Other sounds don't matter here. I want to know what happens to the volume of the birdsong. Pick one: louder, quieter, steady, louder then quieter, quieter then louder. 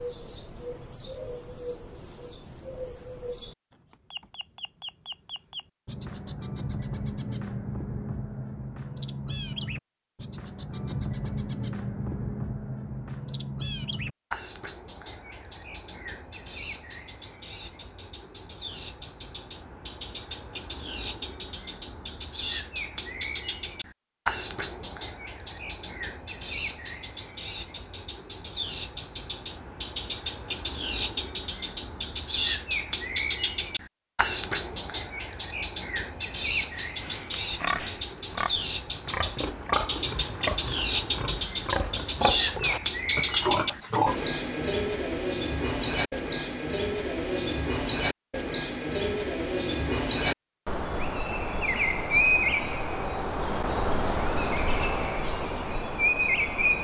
louder.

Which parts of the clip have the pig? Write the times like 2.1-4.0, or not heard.
36.8-44.2.